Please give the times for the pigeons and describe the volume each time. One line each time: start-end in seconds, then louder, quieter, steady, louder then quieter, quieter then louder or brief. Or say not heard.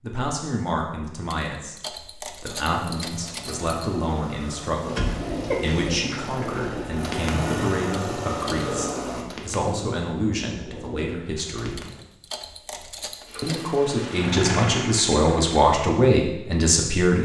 4.8-12.1 quieter.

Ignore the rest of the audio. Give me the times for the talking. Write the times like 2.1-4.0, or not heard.
0.0-11.8, 13.4-17.2.